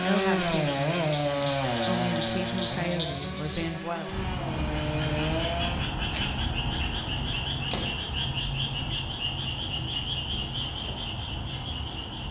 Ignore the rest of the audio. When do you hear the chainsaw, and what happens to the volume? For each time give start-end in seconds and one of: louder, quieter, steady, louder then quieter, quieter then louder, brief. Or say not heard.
0.0-5.9 quieter then louder.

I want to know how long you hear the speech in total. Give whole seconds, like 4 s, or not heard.
4 s.